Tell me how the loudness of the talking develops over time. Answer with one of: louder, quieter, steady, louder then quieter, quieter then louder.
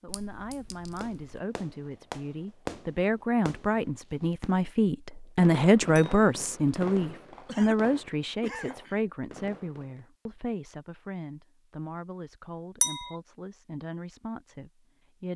louder then quieter.